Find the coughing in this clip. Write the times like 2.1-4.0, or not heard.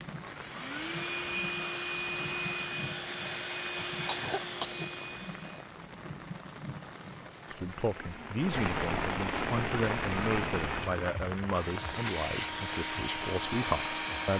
3.6-5.7.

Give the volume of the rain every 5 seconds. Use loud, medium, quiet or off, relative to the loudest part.
medium, loud, loud.